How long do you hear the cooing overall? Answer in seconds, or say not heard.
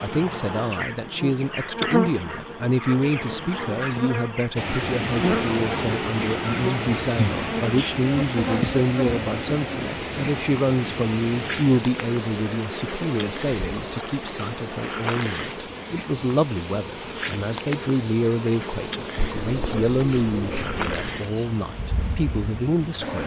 2 s.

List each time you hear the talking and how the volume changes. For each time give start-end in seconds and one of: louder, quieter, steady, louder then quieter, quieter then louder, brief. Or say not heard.
0.0-23.2 steady.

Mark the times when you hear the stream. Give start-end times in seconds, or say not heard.
4.5-23.2.